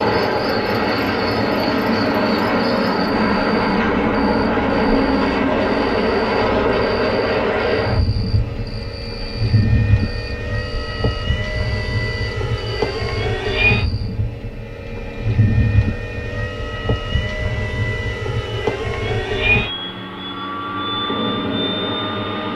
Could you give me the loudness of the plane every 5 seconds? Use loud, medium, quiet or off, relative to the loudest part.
loud, loud, medium, medium, medium.